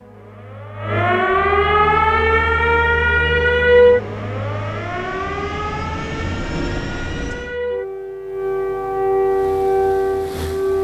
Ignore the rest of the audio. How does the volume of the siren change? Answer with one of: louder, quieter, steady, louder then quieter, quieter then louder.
quieter then louder.